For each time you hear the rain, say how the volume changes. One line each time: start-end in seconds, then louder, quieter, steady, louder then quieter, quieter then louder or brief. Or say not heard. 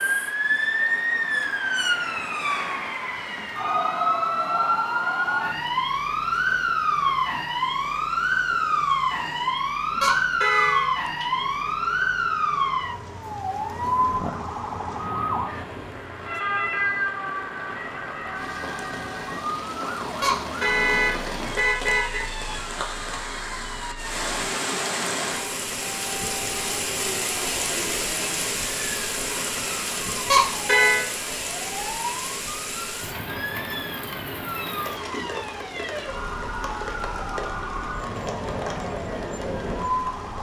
0.0-40.3 louder then quieter.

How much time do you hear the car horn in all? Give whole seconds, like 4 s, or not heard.
4 s.